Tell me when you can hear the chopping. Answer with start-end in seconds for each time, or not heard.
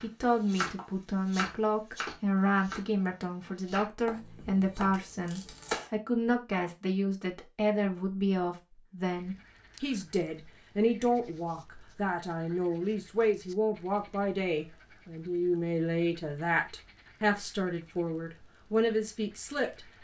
0.0-2.9, 3.6-5.9.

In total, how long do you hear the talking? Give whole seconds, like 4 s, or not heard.
20 s.